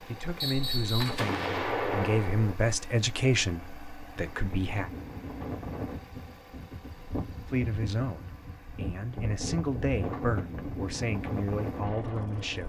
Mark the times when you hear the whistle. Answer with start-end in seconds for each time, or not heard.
0.4-1.2.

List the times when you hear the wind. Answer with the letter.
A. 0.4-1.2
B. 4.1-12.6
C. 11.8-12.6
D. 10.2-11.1
B.